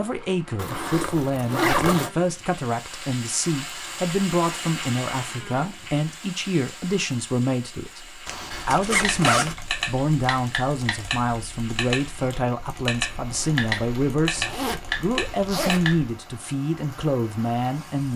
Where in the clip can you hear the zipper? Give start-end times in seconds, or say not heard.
0.6-2.1, 8.2-9.6, 14.3-15.9.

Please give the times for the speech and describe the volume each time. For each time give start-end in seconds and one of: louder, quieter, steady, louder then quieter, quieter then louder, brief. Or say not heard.
0.0-18.1 steady.